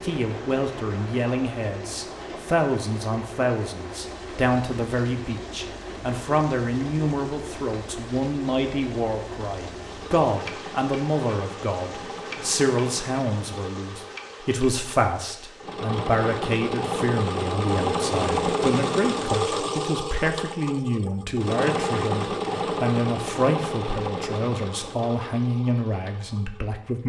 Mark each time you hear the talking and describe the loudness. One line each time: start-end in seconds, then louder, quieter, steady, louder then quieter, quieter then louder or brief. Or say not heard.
0.0-27.0 steady.